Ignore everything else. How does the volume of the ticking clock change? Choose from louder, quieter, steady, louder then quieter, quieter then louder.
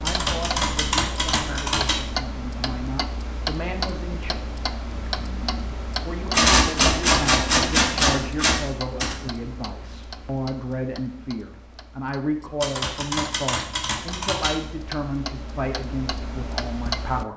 quieter then louder.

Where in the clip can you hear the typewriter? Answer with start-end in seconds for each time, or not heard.
0.1-2.0, 6.3-9.2, 12.6-14.6.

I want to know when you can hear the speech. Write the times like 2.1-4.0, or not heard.
0.0-4.3, 6.0-17.3.